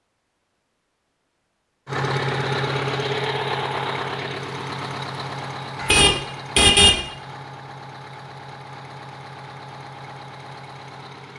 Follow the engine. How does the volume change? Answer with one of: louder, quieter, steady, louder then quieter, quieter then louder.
quieter.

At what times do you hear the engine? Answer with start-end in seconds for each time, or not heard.
1.9-11.3.